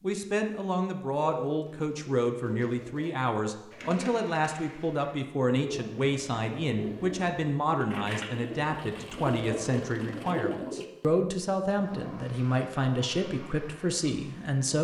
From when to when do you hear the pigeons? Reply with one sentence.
The pigeons can be heard from 1.3 to 10.8 s.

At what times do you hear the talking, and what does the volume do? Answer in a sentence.
You can hear the talking from 0.0 to 14.7 s, at a steady volume.